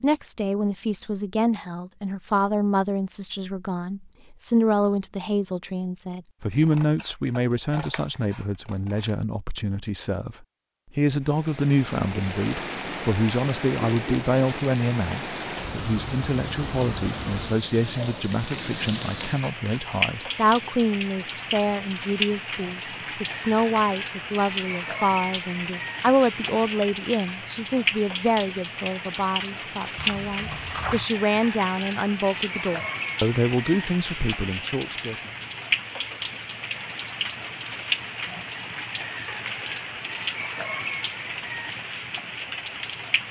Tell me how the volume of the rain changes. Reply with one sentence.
The volume of the rain stays about the same.